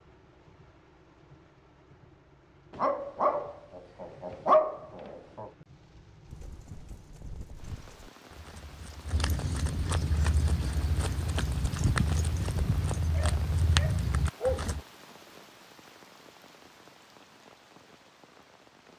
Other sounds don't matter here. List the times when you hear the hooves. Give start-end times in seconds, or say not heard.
6.2-14.8.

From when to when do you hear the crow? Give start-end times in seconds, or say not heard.
not heard.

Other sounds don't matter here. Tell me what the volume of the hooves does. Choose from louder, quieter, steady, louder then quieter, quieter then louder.
louder.